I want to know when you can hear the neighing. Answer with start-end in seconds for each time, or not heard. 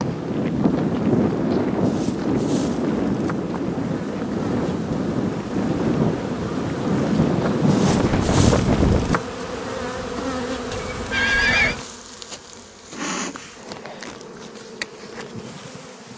10.7-11.8.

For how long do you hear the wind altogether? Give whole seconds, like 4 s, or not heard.
9 s.